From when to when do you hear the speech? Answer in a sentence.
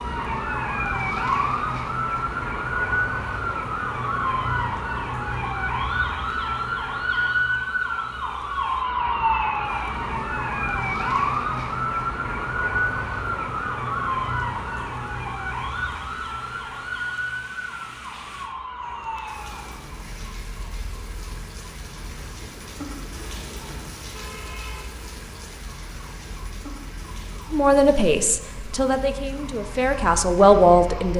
The speech can be heard from 27.5 to 31.1 s.